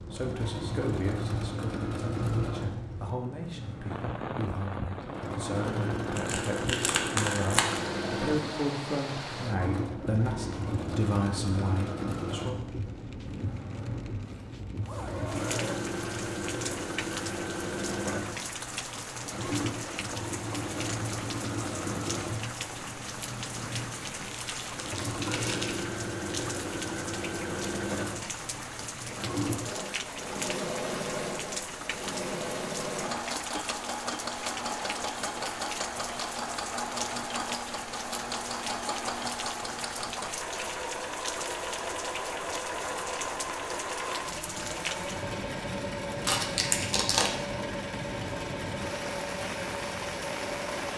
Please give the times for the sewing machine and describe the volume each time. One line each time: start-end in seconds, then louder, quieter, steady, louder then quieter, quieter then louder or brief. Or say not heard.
0.0-50.9 steady.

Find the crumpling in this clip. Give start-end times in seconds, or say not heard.
6.2-7.8, 24.1-25.7, 46.2-47.4.